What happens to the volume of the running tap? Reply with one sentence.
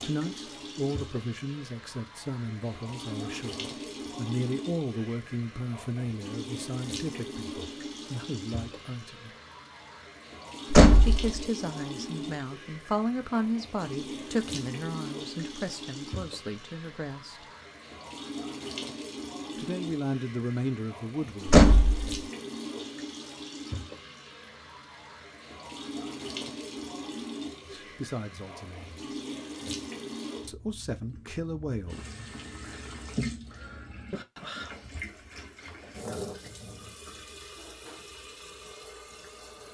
The loudness of the running tap stays about the same.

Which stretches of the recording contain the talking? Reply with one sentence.
The talking can be heard from 0.0 to 9.3 s, from 11.0 to 17.4 s, from 19.6 to 21.6 s, from 27.6 to 29.0 s and from 30.4 to 32.0 s.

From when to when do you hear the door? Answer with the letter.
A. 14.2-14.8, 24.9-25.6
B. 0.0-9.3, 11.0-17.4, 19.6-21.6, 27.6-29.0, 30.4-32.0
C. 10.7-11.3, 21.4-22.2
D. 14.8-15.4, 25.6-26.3
C.